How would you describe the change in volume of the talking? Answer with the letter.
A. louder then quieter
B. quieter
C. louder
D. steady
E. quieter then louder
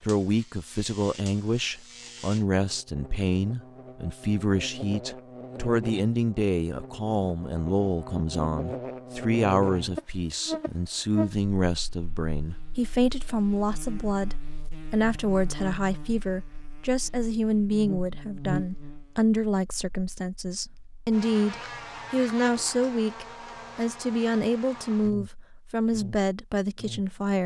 D.